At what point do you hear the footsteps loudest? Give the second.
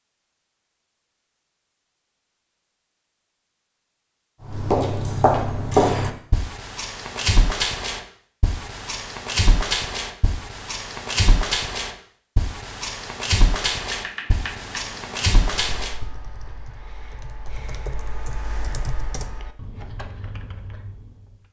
6 s.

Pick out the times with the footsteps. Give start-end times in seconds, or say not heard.
4.5-16.1.